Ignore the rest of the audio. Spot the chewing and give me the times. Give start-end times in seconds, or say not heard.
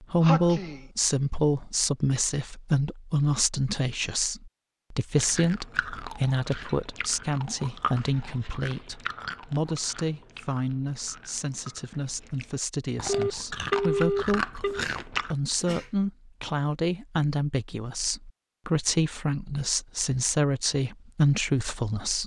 5.1-15.3.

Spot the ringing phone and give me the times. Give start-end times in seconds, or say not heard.
13.1-14.8.